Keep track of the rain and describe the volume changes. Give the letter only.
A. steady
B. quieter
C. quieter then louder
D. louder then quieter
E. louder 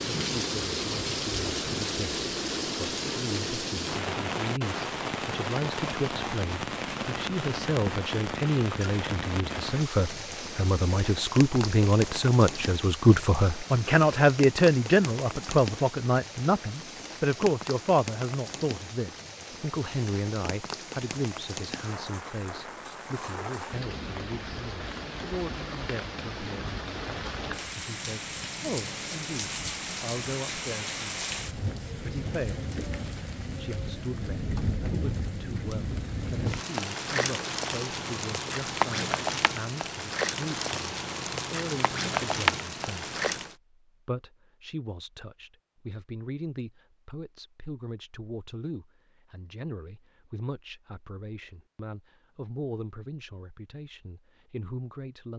C.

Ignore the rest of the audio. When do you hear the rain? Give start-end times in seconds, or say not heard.
0.0-43.5.